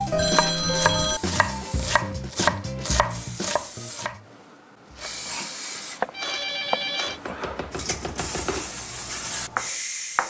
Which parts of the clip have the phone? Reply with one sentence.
The phone can be heard from 0.1 to 1.2 s and from 6.1 to 7.2 s.